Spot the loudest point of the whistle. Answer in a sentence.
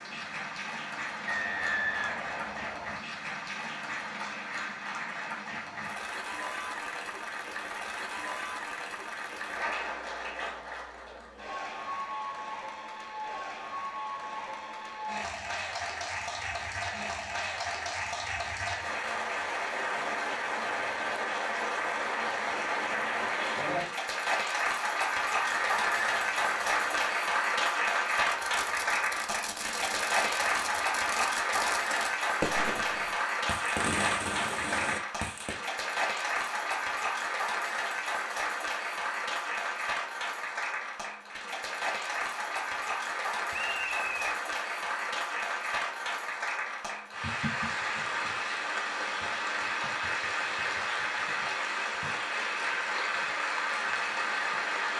The loudest moment of the whistle is at 2 seconds.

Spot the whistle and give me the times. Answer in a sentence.
You can hear the whistle from 1.2 to 3.0 s, from 25.4 to 27.1 s and from 43.5 to 44.4 s.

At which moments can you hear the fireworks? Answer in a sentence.
The fireworks can be heard from 28.1 to 35.5 s.